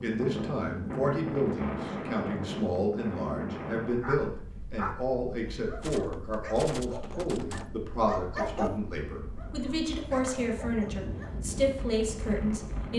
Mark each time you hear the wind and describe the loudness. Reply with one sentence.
You can hear the wind from 0.0 to 12.9 s, getting quieter then louder.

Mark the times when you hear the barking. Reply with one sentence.
The barking can be heard from 4.0 to 11.3 s.